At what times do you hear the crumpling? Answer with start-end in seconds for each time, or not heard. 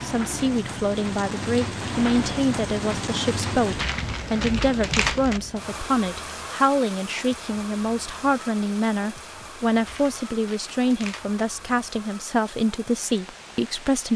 3.8-5.4, 9.8-11.4.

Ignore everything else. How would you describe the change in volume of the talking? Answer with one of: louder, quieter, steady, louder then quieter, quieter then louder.
steady.